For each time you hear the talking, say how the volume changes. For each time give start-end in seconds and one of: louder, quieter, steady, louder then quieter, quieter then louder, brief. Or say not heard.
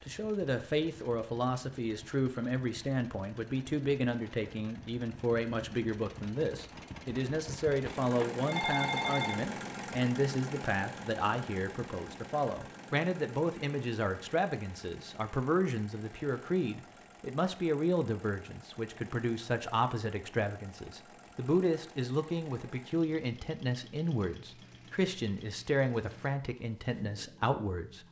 0.0-28.0 steady.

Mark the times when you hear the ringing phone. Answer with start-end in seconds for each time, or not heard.
7.8-9.4.